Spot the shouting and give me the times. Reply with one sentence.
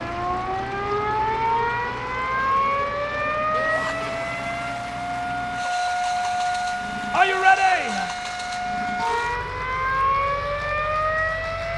You can hear the shouting from 3.5 to 4.0 s and from 7.1 to 8.2 s.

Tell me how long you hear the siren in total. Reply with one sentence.
You can hear the siren for 12 seconds altogether.